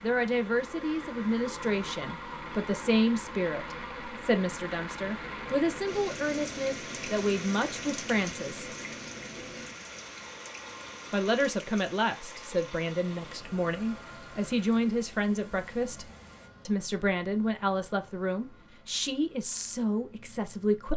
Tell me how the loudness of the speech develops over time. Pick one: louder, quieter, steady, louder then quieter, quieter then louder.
steady.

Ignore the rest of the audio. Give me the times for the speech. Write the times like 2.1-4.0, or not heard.
0.0-8.7, 11.1-16.1, 16.6-20.9.